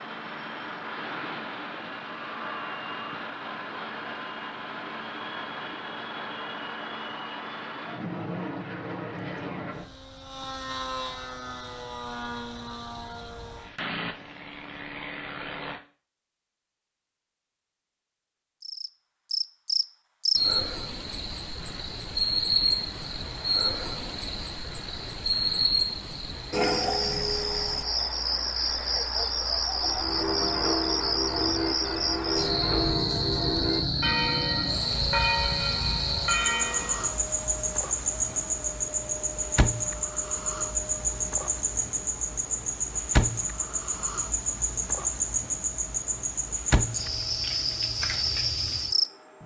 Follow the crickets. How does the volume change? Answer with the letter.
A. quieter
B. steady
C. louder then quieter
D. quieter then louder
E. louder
B.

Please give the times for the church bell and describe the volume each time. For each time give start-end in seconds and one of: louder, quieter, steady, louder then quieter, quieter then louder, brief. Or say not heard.
29.8-37.1 steady.